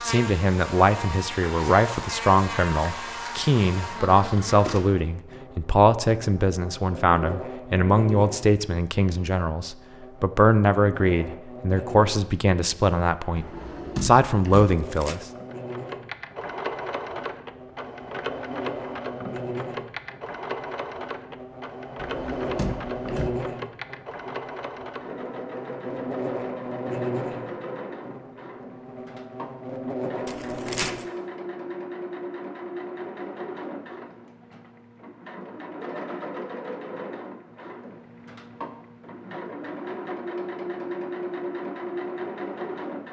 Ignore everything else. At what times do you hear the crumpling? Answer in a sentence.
You can hear the crumpling from 14.6 to 15.2 s and from 30.2 to 31.1 s.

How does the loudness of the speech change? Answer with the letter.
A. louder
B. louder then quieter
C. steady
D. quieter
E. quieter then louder
C.